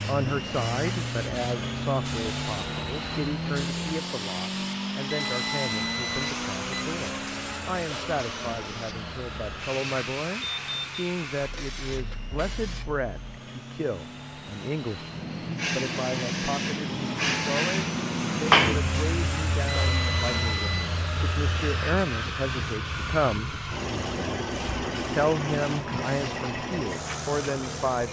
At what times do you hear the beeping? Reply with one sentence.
The beeping can be heard from 5.0 to 6.8 s, from 10.4 to 11.1 s and from 19.6 to 20.9 s.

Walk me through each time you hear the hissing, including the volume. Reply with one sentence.
The hissing can be heard from 0.0 to 28.0 s, getting louder then quieter.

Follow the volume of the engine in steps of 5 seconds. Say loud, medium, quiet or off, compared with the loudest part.
loud, loud, medium, loud, loud, loud.